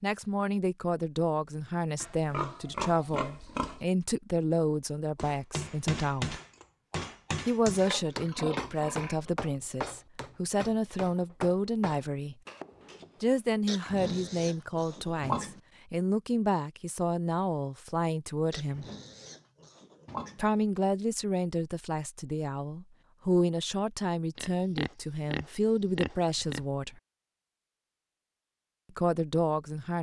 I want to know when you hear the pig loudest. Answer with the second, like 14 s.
15 s.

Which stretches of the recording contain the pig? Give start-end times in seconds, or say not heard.
2.0-3.8, 7.8-9.3, 13.7-15.6, 18.5-20.4, 24.4-26.6.